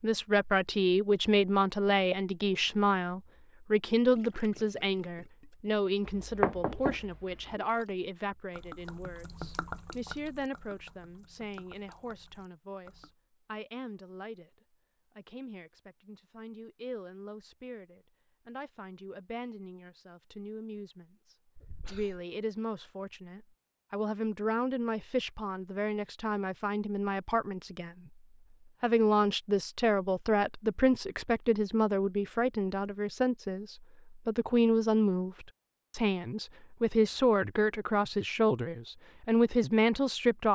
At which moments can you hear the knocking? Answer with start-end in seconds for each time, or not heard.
6.0-7.5.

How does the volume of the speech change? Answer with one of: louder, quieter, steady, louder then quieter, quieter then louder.
quieter then louder.